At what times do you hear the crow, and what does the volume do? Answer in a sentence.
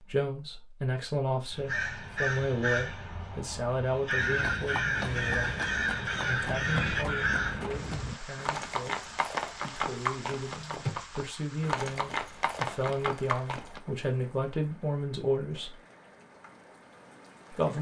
You can hear the crow from 1.5 to 7.8 s, getting quieter then louder.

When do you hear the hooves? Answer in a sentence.
The hooves can be heard from 4.2 to 13.8 s.